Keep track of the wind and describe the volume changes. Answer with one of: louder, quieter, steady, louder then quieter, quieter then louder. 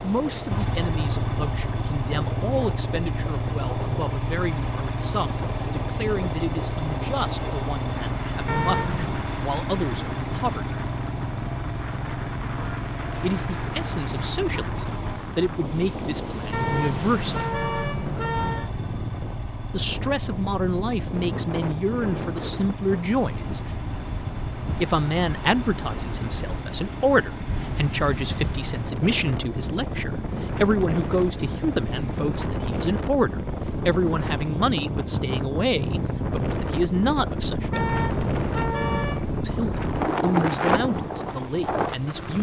louder.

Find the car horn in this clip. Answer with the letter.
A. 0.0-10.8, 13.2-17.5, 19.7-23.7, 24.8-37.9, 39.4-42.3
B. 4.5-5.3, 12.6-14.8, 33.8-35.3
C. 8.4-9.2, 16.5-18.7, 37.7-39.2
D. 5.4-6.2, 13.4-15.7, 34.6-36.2
C.